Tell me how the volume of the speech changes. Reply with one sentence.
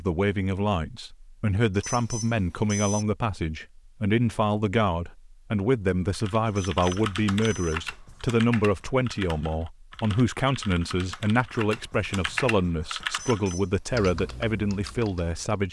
The loudness of the speech stays about the same.